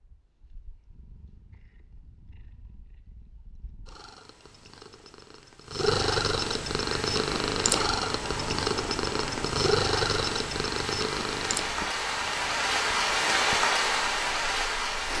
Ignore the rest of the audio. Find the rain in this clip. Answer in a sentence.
The rain can be heard from 6.8 to 15.1 s.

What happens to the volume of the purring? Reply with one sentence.
The loudness of the purring goes up, then down.